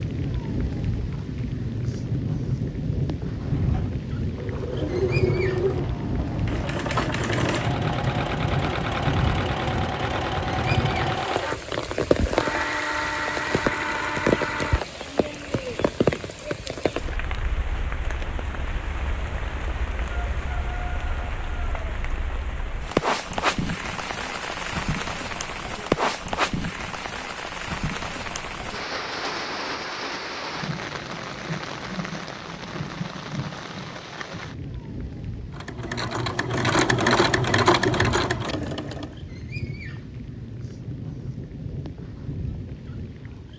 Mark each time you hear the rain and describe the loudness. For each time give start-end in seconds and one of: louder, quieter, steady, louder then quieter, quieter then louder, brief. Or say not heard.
0.0-43.5 quieter.